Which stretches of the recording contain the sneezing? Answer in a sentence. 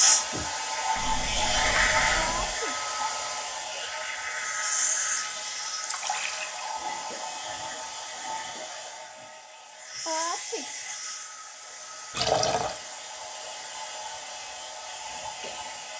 The sneezing can be heard from 2.1 to 2.8 s and from 10.1 to 10.7 s.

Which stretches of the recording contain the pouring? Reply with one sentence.
The pouring can be heard from 0.9 to 2.5 s, from 5.8 to 6.8 s and from 12.1 to 12.8 s.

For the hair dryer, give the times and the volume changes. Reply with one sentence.
The hair dryer can be heard from 0.0 to 15.9 s, getting quieter.